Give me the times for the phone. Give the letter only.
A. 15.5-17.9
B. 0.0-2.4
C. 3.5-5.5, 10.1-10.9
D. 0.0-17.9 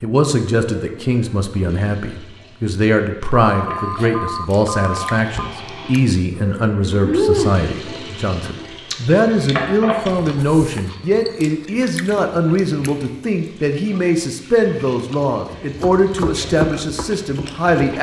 C.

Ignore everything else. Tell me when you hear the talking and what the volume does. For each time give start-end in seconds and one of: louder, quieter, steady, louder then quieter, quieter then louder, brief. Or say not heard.
0.0-17.9 steady.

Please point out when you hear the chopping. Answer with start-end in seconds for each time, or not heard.
15.5-17.9.